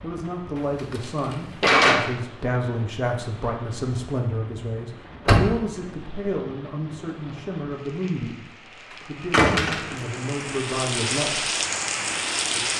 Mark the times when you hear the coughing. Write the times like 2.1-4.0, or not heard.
not heard.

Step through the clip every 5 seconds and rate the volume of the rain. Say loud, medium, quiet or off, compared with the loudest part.
quiet, quiet, loud.